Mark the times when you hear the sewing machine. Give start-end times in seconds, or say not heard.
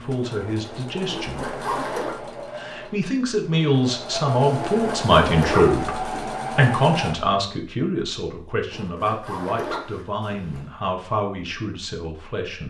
0.0-7.2.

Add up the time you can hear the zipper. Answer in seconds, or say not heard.
5 s.